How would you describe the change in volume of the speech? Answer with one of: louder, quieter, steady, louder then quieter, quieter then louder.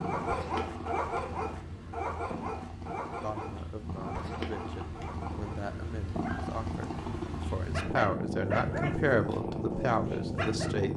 louder.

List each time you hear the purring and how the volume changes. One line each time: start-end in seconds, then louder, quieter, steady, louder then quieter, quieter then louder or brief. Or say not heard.
0.0-10.9 louder.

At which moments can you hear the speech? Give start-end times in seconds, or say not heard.
3.2-10.9.